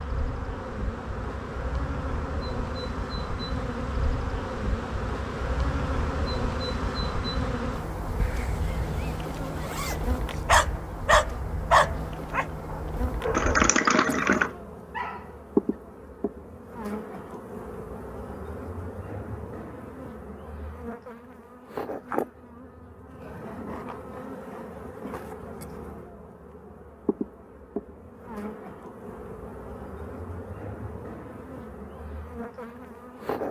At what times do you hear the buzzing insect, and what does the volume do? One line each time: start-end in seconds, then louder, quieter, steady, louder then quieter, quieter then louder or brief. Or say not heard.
0.0-33.4 quieter.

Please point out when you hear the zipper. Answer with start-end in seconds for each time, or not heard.
8.2-10.2.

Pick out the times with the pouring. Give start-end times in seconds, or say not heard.
13.3-14.5.